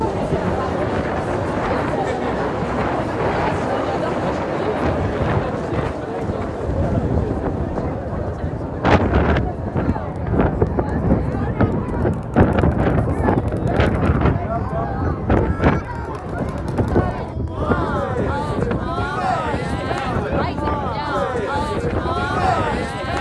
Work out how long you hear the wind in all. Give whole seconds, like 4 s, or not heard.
23 s.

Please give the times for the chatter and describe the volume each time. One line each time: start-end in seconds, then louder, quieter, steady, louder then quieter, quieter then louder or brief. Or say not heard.
0.0-23.1 quieter then louder.